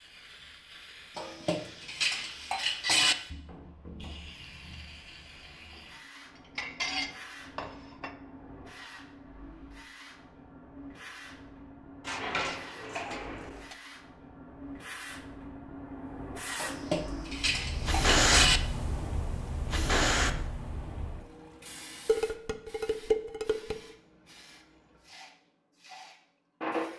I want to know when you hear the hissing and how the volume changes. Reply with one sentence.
You can hear the hissing from 0.0 to 26.9 s, getting louder then quieter.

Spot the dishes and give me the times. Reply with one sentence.
The dishes can be heard from 1.1 to 3.1 s, from 6.5 to 8.2 s, from 12.0 to 13.8 s, from 16.6 to 18.6 s and from 22.1 to 23.8 s.